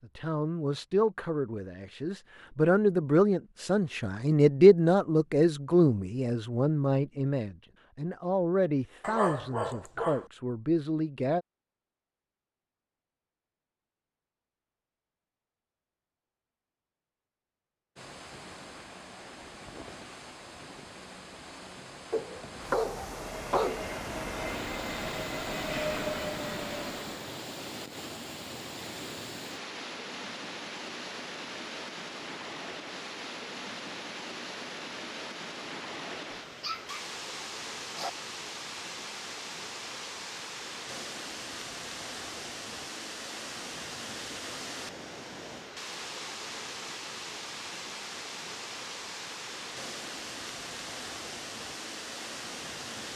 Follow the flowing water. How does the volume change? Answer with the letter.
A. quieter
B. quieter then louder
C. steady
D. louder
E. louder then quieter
C.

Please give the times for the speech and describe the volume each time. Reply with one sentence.
You can hear the speech from 0.0 to 11.4 s, getting louder then quieter.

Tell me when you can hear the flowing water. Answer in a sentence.
You can hear the flowing water from 17.9 to 53.1 s.